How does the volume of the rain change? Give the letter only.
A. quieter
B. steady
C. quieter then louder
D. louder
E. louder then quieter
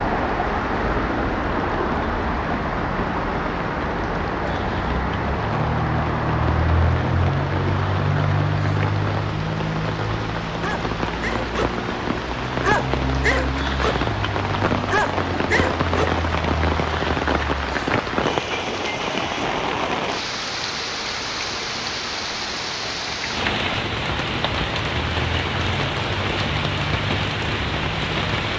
D.